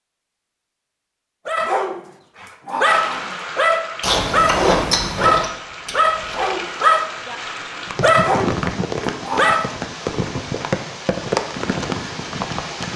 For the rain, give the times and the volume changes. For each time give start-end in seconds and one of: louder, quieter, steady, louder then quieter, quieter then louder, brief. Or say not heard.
2.8-12.9 louder.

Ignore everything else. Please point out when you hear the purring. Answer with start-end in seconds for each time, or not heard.
not heard.